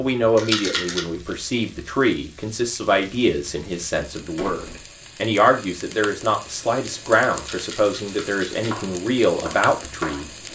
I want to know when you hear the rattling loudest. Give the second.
1 s.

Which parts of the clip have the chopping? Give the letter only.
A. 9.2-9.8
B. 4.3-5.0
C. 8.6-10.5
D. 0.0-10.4
C.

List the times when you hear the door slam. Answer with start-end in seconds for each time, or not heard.
4.3-5.0.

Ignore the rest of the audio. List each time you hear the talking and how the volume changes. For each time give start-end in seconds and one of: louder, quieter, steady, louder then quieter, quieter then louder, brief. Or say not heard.
0.0-10.4 steady.